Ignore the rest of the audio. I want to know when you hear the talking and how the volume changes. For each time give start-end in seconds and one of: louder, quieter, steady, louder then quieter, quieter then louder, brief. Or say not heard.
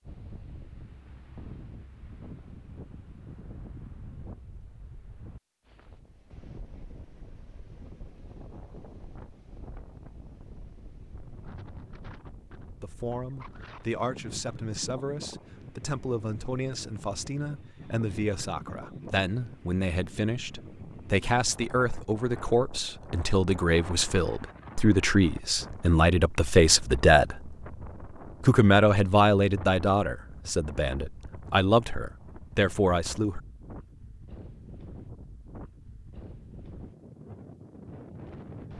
12.8-27.6 louder
28.4-33.4 quieter then louder.